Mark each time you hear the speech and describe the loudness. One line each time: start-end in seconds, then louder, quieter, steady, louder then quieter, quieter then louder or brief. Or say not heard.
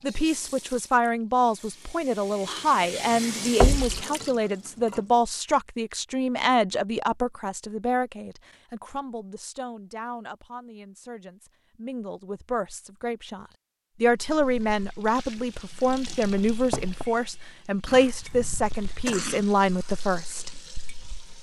0.0-20.6 quieter then louder.